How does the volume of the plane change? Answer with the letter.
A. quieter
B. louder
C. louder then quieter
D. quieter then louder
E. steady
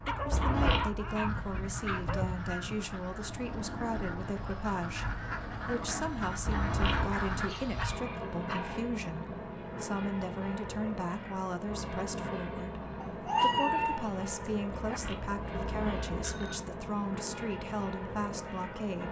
E.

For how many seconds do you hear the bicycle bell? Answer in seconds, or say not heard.
3 s.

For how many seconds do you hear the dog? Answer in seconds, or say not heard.
6 s.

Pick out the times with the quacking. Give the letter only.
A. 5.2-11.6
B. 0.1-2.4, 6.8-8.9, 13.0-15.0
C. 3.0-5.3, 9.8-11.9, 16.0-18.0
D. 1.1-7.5
D.